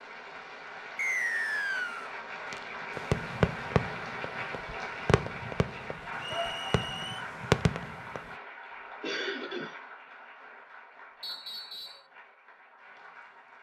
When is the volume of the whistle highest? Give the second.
1 s.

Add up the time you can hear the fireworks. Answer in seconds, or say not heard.
6 s.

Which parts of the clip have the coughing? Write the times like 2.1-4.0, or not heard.
9.0-9.8.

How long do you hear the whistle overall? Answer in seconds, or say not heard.
3 s.